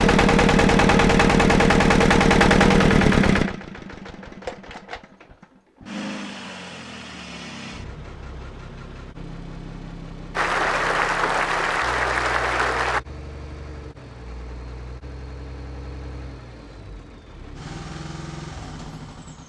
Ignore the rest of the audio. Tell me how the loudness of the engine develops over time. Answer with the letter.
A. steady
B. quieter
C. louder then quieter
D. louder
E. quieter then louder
B.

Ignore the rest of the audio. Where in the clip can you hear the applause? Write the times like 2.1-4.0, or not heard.
10.3-13.0.